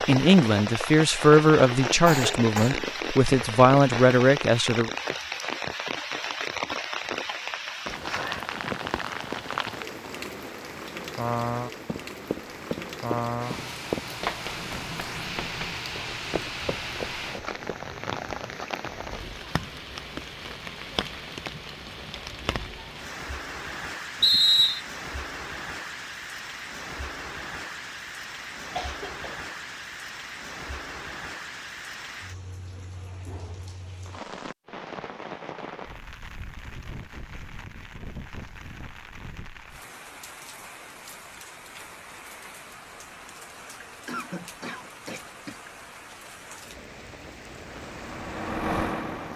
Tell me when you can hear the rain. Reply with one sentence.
The rain can be heard from 0.0 to 49.3 s.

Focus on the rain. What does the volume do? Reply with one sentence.
The volume of the rain goes down.